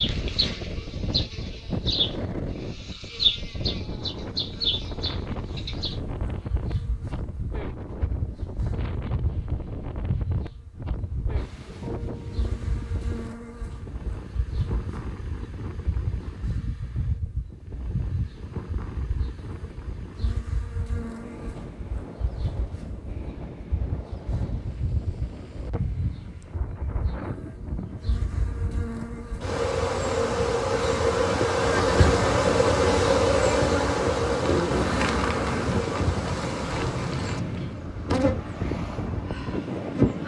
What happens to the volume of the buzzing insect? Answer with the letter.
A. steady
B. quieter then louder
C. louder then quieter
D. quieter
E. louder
B.